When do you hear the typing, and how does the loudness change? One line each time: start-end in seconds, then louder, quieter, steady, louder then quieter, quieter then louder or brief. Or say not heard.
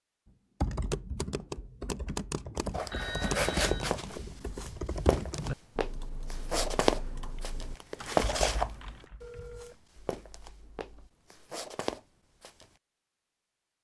0.6-11.1 quieter.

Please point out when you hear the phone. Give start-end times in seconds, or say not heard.
2.9-4.0, 9.2-9.8.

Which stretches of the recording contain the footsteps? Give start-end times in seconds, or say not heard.
2.7-12.7.